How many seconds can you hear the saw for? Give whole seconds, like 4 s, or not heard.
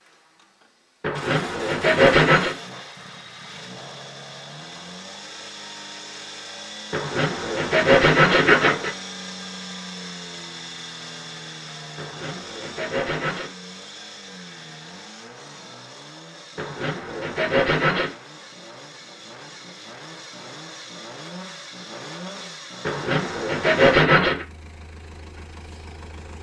8 s.